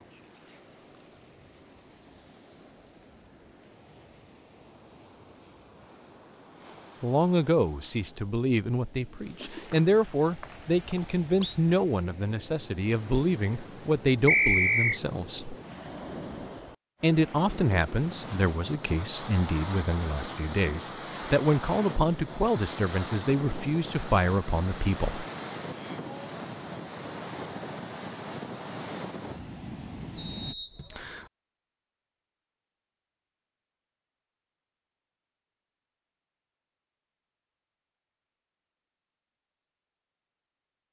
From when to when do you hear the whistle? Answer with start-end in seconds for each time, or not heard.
9.7-11.6, 14.2-15.0, 30.1-31.3.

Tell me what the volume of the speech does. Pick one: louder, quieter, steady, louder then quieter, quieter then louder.
steady.